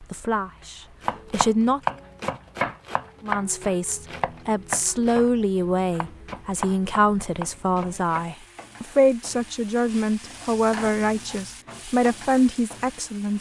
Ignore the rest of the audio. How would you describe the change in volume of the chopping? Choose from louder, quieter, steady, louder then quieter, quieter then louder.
quieter then louder.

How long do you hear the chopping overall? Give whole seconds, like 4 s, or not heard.
7 s.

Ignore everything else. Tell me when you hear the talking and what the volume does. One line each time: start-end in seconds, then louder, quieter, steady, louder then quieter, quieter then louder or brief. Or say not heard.
0.0-1.8 brief
3.2-13.3 steady.